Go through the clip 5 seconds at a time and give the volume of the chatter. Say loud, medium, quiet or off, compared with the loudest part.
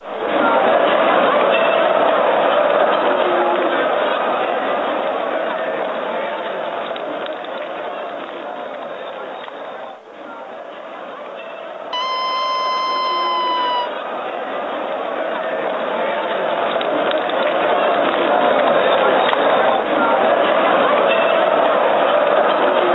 loud, medium, quiet, loud, loud.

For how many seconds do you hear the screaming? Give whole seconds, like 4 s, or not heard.
2 s.